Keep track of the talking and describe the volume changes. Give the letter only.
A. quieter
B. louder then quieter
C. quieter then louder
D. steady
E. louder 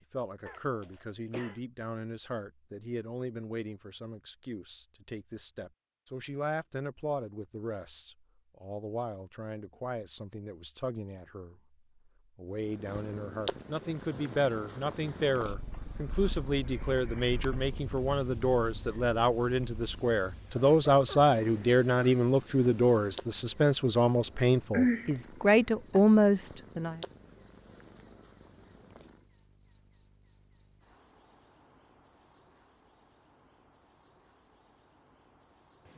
E.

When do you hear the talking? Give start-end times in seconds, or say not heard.
0.1-11.6, 12.3-27.0.